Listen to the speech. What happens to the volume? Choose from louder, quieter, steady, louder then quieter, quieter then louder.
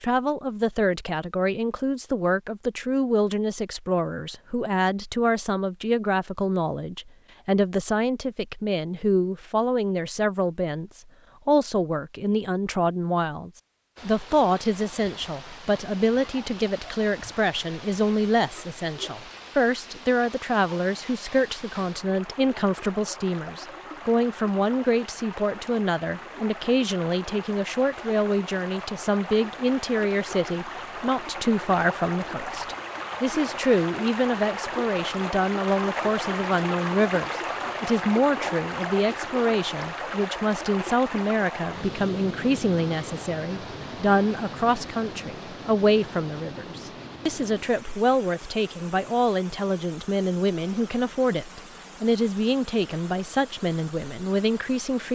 steady.